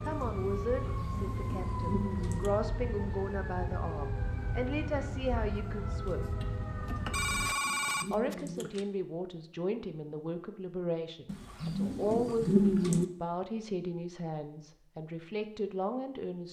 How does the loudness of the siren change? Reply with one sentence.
The volume of the siren stays about the same.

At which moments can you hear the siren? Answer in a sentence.
You can hear the siren from 0.0 to 7.5 s.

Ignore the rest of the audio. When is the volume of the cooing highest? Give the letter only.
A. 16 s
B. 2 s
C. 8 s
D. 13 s
D.